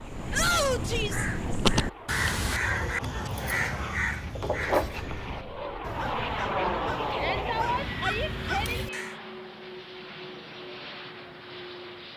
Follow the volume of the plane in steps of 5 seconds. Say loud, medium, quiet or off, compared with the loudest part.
medium, loud, medium.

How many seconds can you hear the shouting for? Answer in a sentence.
You can hear the shouting for 3 seconds altogether.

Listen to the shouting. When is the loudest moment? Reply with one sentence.
The volume of the shouting peaks at 1 second.